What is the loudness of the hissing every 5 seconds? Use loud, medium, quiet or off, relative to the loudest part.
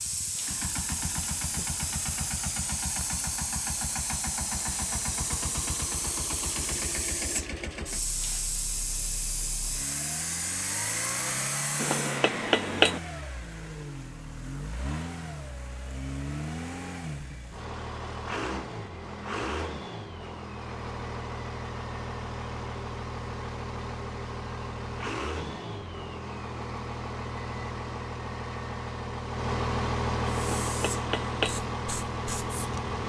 loud, loud, loud, off, off, off, medium.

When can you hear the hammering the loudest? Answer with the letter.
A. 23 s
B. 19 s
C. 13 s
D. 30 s
C.